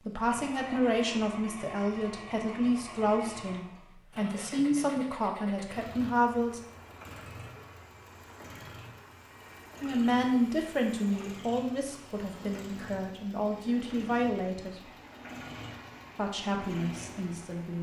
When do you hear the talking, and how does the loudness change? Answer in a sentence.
The talking can be heard from 0.1 to 6.6 s, at a steady volume; from 9.8 to 14.8 s, getting quieter then louder; and briefly from 16.1 to 17.7 s.